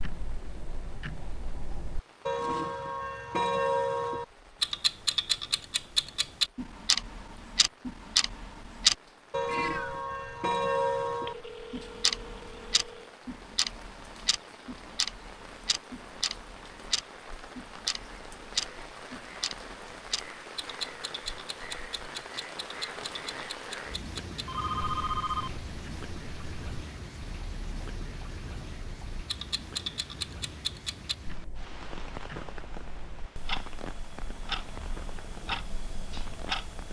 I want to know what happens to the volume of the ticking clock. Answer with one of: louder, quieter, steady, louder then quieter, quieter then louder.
quieter.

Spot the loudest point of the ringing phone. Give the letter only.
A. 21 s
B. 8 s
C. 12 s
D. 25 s
D.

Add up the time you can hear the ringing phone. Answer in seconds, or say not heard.
3 s.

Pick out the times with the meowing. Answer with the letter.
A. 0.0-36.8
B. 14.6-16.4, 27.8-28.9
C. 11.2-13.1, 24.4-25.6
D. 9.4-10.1
D.